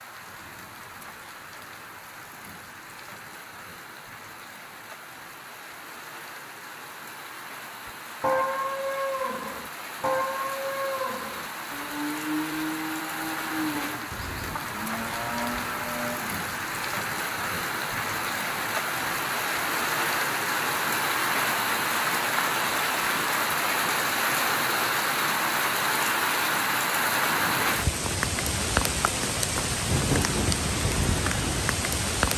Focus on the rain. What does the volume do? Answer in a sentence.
The loudness of the rain goes up.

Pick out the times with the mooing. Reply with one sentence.
You can hear the mooing from 7.8 to 16.3 s.